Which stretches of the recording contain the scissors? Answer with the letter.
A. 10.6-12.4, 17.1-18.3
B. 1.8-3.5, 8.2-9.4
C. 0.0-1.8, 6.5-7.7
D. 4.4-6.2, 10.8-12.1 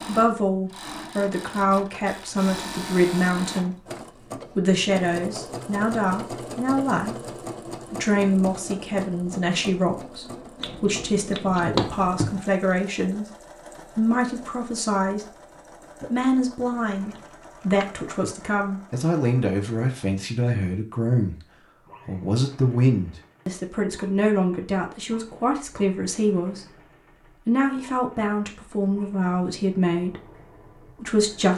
A.